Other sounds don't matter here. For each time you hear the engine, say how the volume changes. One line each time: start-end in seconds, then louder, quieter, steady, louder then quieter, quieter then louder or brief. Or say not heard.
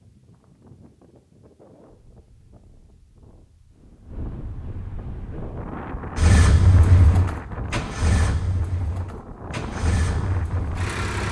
6.2-11.2 quieter.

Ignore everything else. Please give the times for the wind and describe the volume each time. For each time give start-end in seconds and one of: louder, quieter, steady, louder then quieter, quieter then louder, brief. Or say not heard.
0.0-11.2 louder.